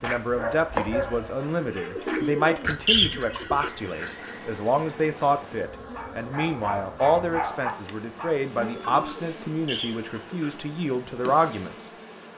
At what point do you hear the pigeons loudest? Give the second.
3 s.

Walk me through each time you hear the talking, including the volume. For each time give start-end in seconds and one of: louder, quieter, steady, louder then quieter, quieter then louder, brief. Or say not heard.
0.0-11.9 steady.